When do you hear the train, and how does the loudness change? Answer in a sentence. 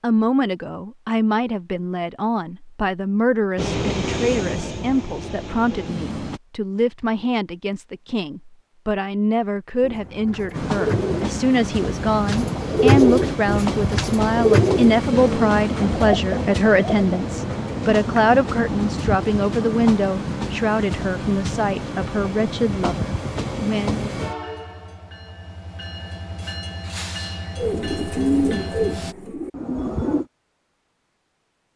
The train can be heard briefly from 3.5 to 6.4 s; and from 10.5 to 29.1 s, getting quieter.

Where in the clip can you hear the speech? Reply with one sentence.
The speech can be heard from 0.0 to 24.1 s.